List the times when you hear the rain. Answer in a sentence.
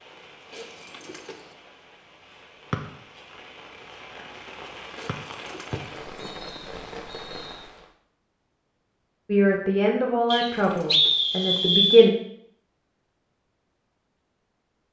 The rain can be heard from 0.0 to 8.0 s.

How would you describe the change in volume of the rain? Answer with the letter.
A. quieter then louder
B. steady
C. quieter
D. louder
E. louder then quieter
D.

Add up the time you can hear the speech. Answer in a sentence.
The speech can be heard for 3 seconds in total.